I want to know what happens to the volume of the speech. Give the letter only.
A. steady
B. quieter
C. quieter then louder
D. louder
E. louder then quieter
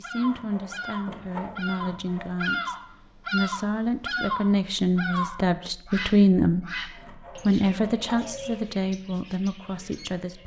E.